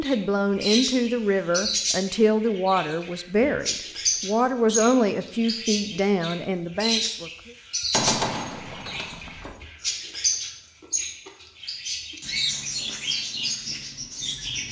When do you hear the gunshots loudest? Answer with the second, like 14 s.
8 s.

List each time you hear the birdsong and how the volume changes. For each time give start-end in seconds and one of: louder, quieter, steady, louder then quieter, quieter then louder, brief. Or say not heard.
0.0-14.6 steady.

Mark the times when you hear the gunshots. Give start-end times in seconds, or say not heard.
7.9-9.6.